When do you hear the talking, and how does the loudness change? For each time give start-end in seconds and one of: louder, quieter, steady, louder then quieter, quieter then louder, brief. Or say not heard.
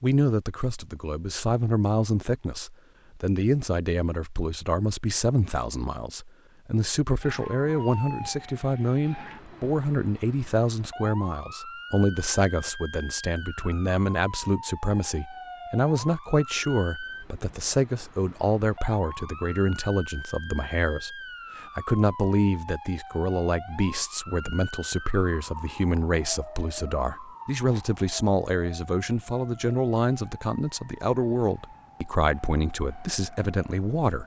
0.0-34.2 steady.